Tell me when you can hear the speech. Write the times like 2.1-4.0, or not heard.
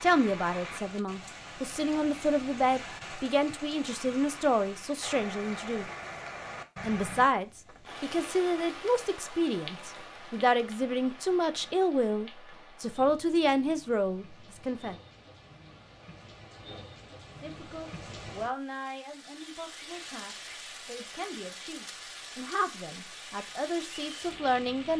0.0-5.8, 6.8-14.9, 17.4-24.9.